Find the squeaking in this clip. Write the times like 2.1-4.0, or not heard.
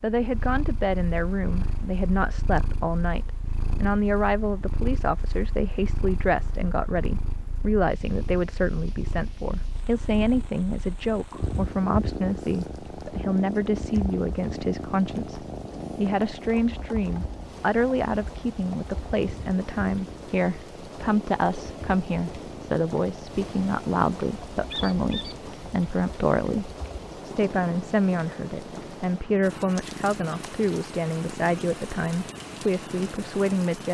24.7-25.4.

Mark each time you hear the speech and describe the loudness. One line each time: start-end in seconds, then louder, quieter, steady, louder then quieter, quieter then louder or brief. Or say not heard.
0.0-33.8 steady.